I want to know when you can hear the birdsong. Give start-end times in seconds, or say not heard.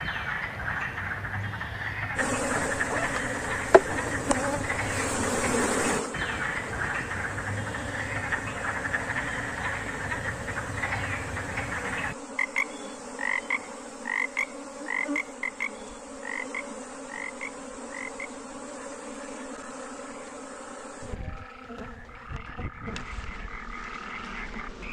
not heard.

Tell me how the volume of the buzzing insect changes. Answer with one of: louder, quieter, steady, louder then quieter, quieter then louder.
quieter.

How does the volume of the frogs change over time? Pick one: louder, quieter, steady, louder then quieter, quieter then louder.
quieter.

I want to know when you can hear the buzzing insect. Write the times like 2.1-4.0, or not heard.
2.1-24.8.